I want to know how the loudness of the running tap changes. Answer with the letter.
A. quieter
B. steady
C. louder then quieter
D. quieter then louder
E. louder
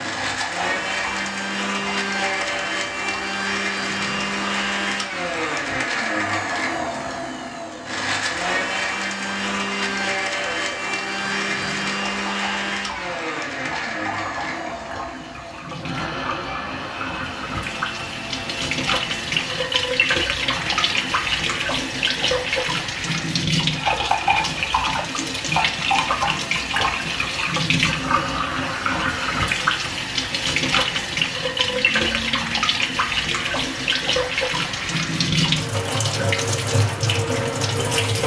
E.